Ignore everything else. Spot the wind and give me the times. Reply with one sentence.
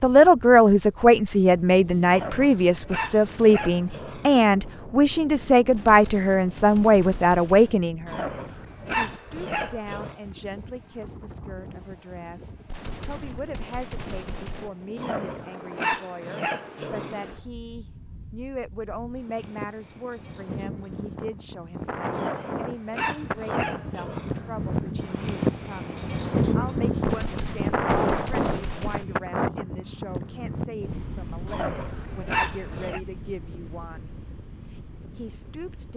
You can hear the wind from 0.0 to 35.9 s.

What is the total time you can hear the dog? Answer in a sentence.
You can hear the dog for 11 seconds altogether.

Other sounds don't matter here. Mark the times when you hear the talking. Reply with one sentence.
The talking can be heard from 0.0 to 8.3 s, from 8.9 to 34.1 s and from 35.1 to 35.9 s.